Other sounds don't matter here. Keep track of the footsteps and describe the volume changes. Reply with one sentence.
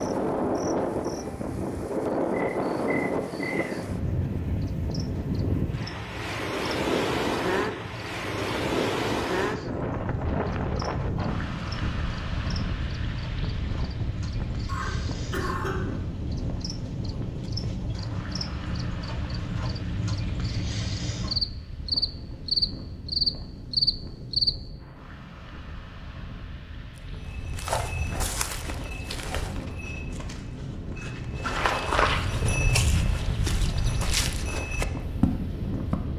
The volume of the footsteps goes down, then up.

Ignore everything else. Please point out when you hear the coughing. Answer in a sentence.
You can hear the coughing from 14.7 to 15.8 s.